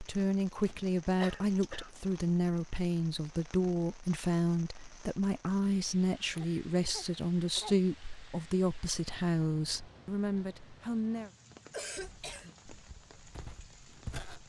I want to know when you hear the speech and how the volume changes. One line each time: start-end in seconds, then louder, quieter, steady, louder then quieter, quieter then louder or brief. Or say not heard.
0.0-11.3 steady.